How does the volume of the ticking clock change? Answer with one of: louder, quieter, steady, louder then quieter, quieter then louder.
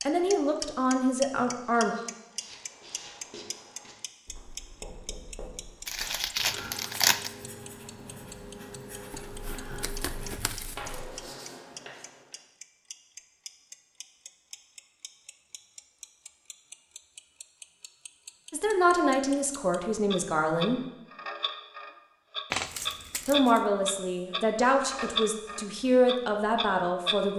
quieter then louder.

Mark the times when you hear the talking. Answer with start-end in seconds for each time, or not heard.
0.0-1.9, 18.5-20.9, 23.2-27.3.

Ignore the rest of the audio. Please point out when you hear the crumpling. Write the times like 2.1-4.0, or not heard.
5.8-7.3, 9.1-11.1, 22.5-23.6.